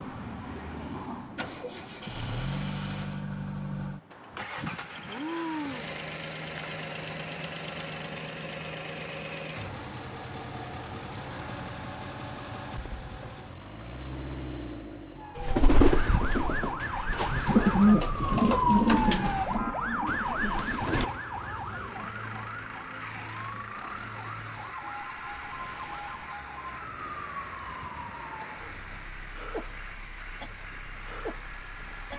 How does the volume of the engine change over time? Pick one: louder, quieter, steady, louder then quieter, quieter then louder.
quieter.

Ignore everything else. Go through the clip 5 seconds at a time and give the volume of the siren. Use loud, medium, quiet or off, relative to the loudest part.
off, off, off, loud, medium, medium, quiet.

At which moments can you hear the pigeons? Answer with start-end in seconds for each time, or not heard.
15.3-21.1.